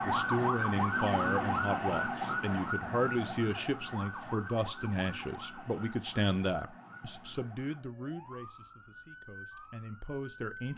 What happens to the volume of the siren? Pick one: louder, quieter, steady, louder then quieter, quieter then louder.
quieter.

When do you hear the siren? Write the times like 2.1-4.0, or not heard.
0.0-10.7.